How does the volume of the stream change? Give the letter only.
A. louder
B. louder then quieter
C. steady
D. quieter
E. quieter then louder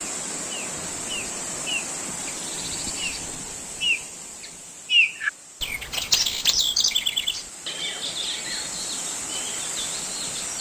E.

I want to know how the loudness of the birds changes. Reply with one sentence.
The volume of the birds goes up, then down.